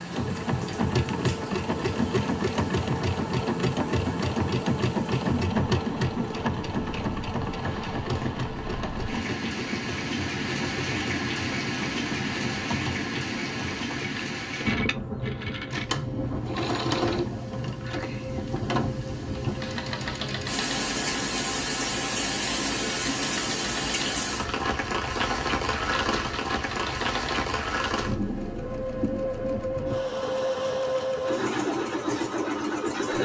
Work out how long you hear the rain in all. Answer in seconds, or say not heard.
33 s.